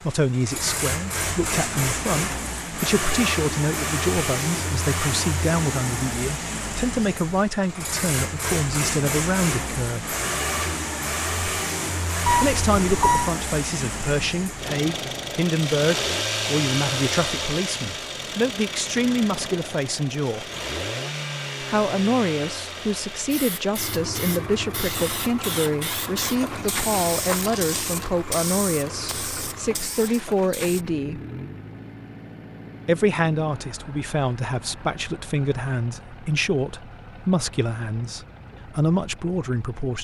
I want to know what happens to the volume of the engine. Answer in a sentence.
The loudness of the engine goes down.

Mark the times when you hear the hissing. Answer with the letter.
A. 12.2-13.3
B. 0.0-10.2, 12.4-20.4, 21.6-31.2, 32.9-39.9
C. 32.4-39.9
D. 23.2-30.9
D.